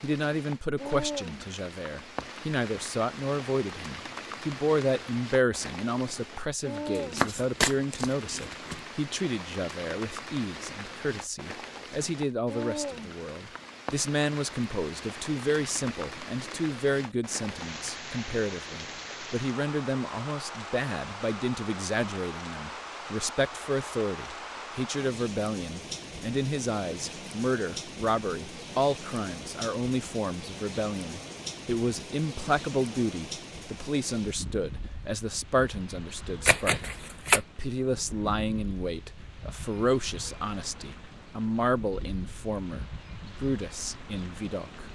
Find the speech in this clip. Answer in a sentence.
The speech can be heard from 0.0 to 44.8 s.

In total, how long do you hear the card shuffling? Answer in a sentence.
You can hear the card shuffling for 3 seconds altogether.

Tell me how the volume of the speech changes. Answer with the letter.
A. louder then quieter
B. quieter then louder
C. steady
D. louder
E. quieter
C.